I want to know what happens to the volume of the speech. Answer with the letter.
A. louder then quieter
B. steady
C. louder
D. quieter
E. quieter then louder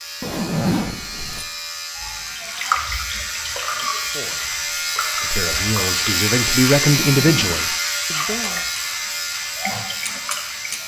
A.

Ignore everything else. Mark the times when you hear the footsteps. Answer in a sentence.
You can't hear the footsteps here.